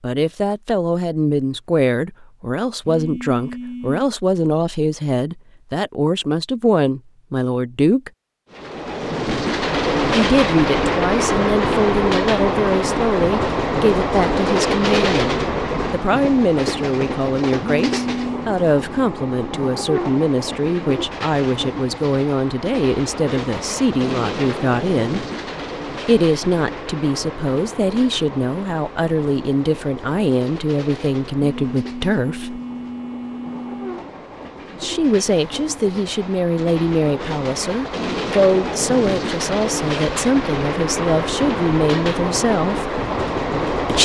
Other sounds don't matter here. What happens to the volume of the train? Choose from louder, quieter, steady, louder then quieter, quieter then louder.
quieter then louder.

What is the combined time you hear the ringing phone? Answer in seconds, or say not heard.
5 s.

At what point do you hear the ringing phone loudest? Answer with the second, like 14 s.
18 s.